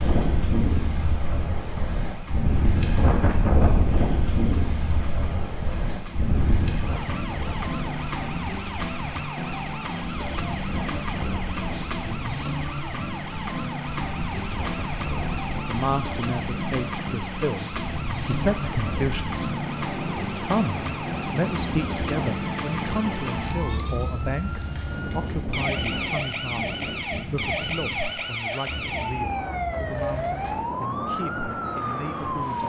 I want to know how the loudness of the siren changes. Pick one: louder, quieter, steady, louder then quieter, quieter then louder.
louder.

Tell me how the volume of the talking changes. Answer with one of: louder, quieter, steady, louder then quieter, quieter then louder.
quieter.